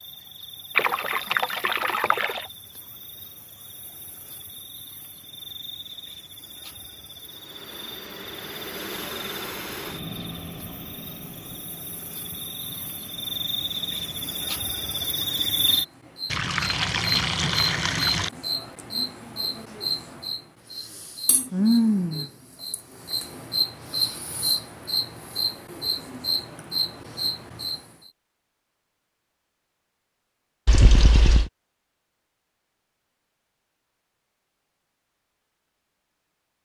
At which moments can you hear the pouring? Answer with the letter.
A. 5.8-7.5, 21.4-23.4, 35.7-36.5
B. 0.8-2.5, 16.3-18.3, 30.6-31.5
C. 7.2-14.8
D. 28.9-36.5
B.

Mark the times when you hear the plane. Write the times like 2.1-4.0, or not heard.
7.2-14.8.